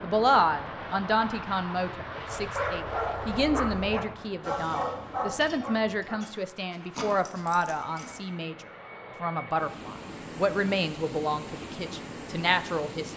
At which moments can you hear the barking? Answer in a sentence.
You can hear the barking from 2.3 to 8.2 s.